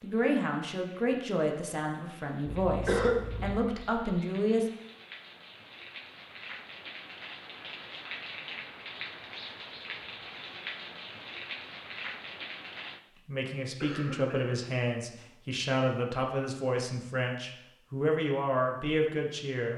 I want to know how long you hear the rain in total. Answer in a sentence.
The rain can be heard for 13 seconds in total.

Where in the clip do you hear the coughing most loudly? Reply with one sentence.
The volume of the coughing peaks at 3 seconds.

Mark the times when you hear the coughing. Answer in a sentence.
You can hear the coughing from 2.5 to 3.6 s and from 13.8 to 14.6 s.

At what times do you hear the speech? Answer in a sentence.
The speech can be heard from 0.0 to 4.7 s and from 13.2 to 19.7 s.